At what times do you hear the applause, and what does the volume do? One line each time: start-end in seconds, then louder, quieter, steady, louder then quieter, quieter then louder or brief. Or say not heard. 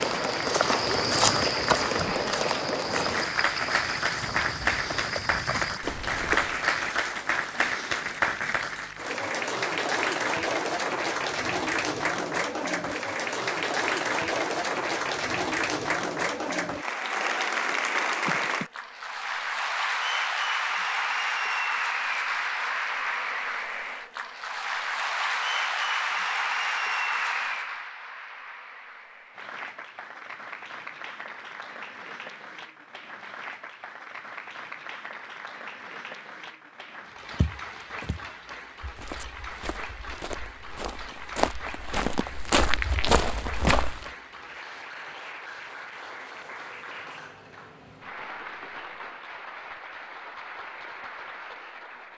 0.0-52.1 quieter.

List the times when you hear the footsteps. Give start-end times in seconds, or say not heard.
0.0-6.6, 37.3-44.1.